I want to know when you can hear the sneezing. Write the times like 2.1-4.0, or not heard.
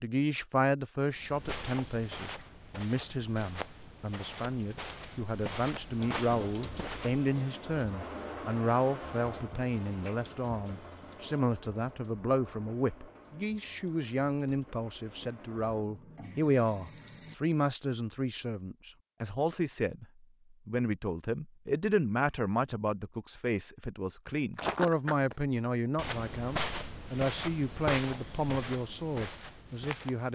not heard.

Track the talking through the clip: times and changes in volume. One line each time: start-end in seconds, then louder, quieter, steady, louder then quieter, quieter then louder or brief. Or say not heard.
0.0-30.3 steady.